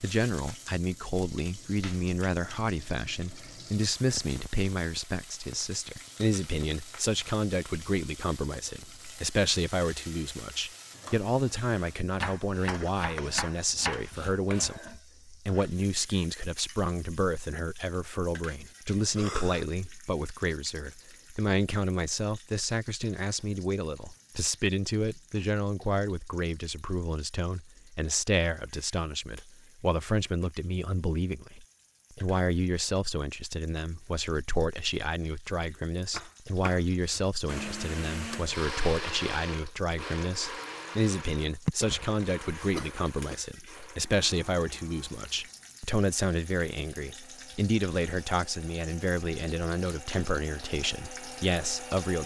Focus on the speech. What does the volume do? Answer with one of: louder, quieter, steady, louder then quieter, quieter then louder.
steady.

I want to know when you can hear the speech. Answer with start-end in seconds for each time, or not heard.
0.0-52.2.